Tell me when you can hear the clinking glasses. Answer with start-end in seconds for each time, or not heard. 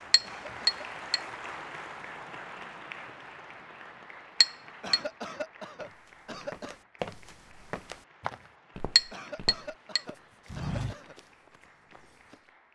0.1-1.2, 4.4-5.0, 8.9-10.0.